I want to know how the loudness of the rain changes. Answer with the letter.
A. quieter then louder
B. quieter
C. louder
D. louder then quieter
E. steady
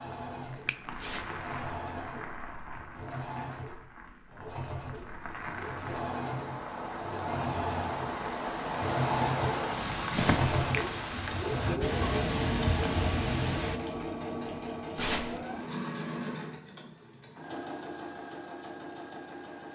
C.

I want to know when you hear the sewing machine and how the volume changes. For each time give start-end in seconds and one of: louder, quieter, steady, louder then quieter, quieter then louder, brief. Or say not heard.
0.0-19.6 louder then quieter.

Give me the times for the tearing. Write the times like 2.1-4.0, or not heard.
0.9-1.4, 10.1-10.5, 14.9-15.4.